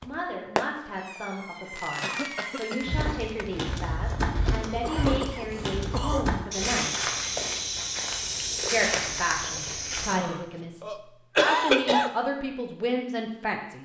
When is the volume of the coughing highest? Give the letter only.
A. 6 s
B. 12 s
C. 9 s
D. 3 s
B.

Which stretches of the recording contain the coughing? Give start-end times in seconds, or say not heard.
2.0-3.0, 4.8-6.2, 10.1-12.1.